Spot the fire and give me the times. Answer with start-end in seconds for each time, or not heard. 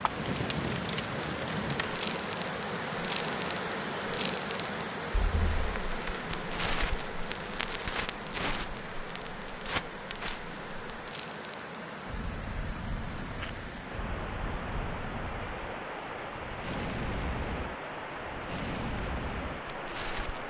0.0-20.4.